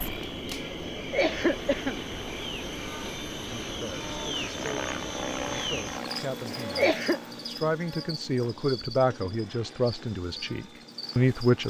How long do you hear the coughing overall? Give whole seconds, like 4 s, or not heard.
2 s.